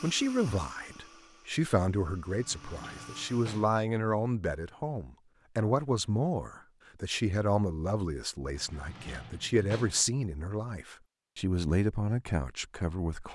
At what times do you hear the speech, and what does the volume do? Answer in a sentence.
The speech can be heard from 0.0 to 13.3 s, at a steady volume.